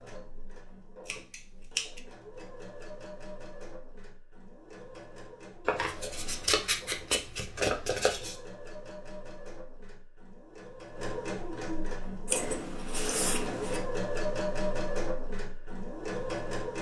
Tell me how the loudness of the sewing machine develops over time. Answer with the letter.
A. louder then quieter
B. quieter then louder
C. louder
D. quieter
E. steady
C.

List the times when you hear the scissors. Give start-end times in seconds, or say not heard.
1.1-2.0, 5.7-8.3, 12.2-13.8.